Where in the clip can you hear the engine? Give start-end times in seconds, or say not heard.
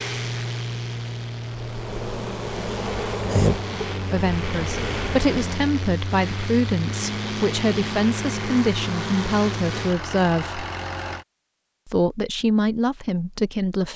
0.0-11.2.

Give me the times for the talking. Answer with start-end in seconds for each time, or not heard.
4.1-10.7, 11.8-13.9.